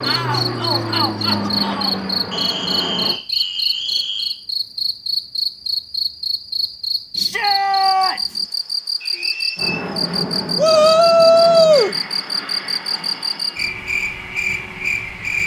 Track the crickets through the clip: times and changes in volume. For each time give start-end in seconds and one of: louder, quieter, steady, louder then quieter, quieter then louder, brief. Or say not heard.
0.0-15.4 steady.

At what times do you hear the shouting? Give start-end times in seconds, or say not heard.
0.0-2.0, 7.2-8.4, 10.6-11.9.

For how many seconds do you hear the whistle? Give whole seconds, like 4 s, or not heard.
3 s.